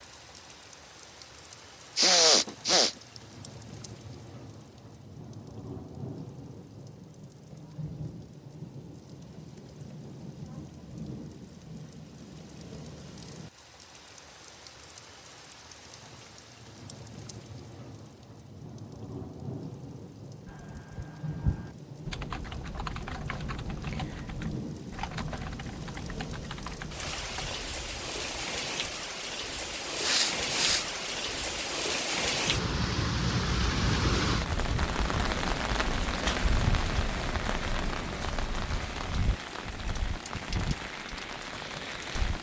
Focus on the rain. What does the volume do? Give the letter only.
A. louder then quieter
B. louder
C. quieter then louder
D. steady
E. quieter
B.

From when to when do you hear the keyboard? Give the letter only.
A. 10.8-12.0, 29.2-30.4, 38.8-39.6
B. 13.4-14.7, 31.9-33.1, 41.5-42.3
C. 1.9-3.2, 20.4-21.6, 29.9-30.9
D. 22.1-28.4
D.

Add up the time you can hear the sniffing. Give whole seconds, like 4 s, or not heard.
3 s.